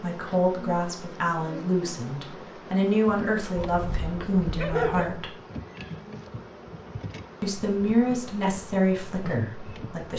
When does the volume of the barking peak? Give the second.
5 s.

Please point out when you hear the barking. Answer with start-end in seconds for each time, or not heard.
3.5-5.2.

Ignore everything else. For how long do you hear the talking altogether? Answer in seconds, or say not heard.
8 s.